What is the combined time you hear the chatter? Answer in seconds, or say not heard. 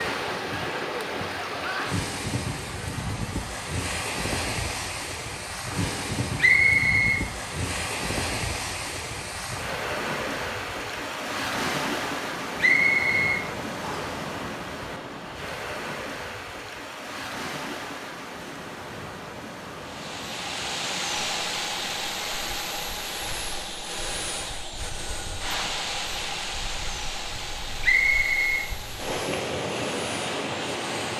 not heard.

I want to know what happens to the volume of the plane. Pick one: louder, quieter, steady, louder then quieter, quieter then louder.
quieter.